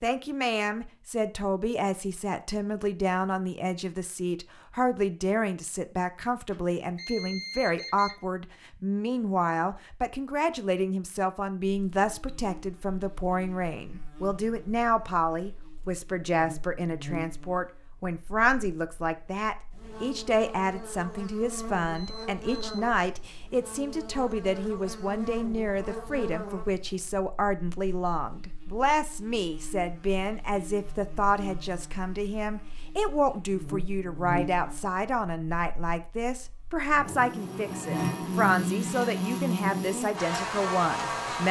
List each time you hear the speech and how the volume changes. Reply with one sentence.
You can hear the speech from 0.0 to 41.4 s, at a steady volume.